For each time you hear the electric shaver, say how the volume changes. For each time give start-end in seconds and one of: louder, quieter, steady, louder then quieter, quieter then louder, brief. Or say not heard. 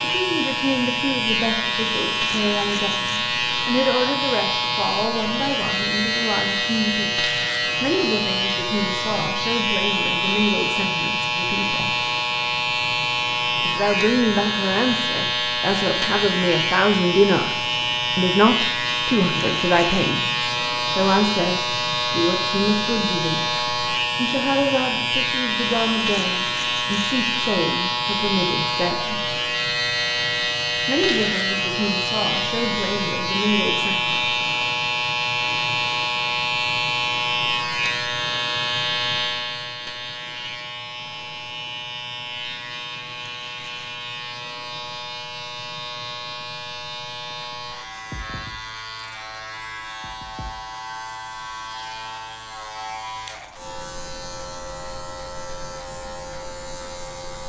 0.0-57.4 quieter.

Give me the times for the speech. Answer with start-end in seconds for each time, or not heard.
0.0-11.9, 13.7-23.5, 24.1-29.2, 30.9-34.2.